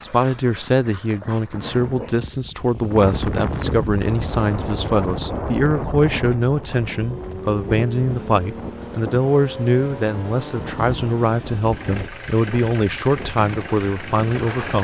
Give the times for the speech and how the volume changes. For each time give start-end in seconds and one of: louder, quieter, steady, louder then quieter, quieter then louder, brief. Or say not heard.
0.0-14.7 steady.